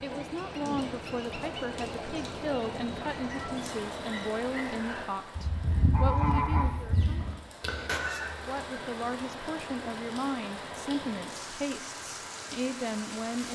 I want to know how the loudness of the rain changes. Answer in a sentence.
The loudness of the rain goes down, then up.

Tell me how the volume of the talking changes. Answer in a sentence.
The loudness of the talking stays about the same.